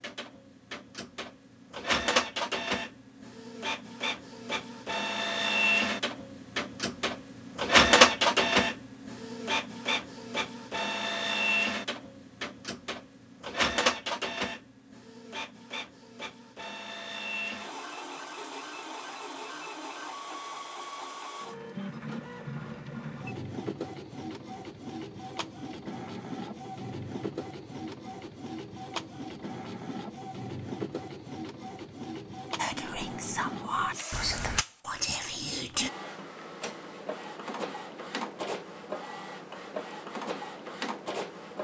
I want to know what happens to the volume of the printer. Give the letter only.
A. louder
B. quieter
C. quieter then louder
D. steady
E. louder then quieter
B.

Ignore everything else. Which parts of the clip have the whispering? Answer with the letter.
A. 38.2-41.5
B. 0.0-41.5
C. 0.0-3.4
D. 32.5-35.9
D.